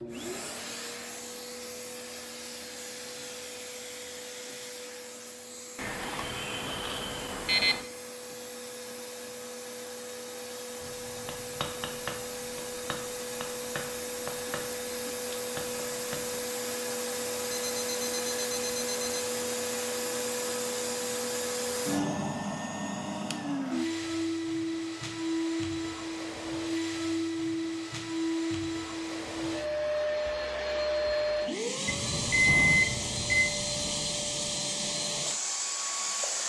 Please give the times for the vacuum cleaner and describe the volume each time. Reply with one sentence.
The vacuum cleaner can be heard from 0.0 to 36.4 s, getting louder.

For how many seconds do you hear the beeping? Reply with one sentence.
The beeping can be heard for 5 seconds in total.